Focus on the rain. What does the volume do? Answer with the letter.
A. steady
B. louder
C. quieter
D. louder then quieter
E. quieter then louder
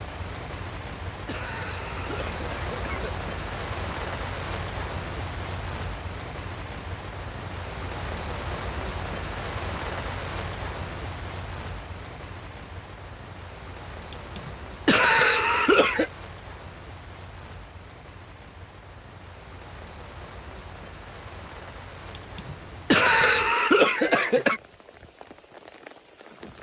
C.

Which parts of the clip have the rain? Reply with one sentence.
You can hear the rain from 0.0 to 26.5 s.